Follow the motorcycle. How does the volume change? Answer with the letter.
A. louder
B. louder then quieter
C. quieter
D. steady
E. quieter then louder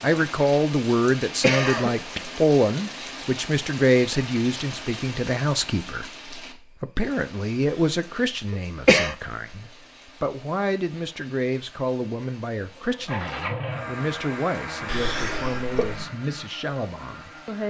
C.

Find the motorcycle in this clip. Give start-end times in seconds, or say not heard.
12.8-17.6.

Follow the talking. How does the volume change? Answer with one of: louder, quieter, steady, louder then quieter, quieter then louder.
quieter.